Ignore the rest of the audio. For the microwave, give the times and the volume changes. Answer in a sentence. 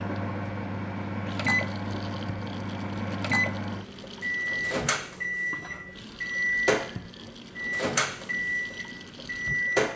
The microwave can be heard from 0.0 to 9.9 s, at a steady volume.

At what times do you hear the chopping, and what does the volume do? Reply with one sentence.
The chopping can't be heard in this clip.